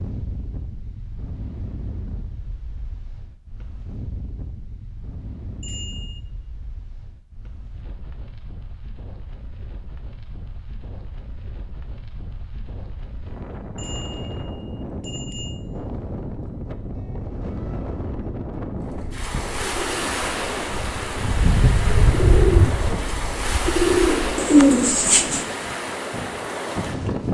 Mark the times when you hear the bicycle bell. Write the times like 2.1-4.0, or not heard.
5.6-6.2, 13.8-15.6.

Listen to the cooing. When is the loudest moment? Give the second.
25 s.